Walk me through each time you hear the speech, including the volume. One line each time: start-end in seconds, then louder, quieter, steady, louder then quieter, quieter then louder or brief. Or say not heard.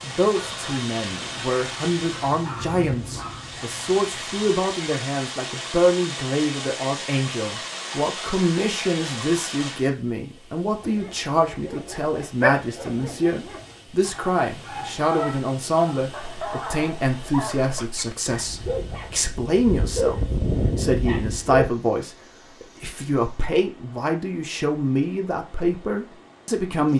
0.0-26.9 steady.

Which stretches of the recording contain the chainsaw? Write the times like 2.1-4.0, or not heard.
not heard.